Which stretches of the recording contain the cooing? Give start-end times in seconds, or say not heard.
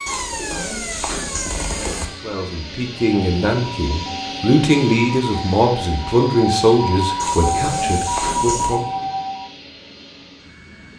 0.1-2.0, 7.2-8.8.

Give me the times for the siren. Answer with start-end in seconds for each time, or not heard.
0.0-9.5.